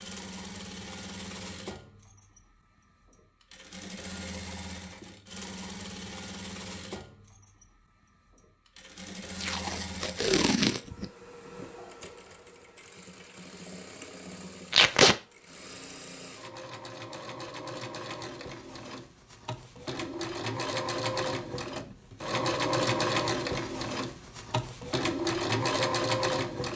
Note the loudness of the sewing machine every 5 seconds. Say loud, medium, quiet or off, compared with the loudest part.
quiet, quiet, quiet, quiet, loud, loud.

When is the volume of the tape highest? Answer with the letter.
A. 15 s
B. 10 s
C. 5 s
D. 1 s
A.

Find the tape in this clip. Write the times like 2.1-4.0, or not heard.
9.3-11.1, 14.7-15.2.